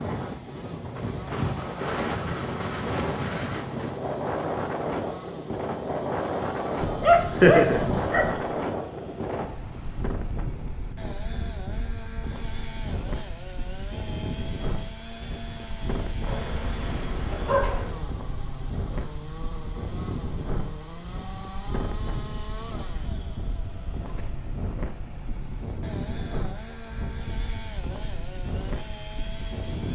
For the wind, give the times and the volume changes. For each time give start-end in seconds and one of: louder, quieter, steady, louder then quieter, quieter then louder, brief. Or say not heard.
0.0-29.9 quieter.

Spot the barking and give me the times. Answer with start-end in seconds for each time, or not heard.
6.8-8.4, 16.2-18.0.